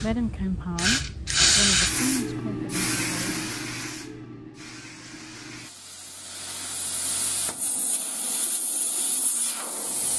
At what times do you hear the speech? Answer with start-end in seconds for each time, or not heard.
0.0-3.5.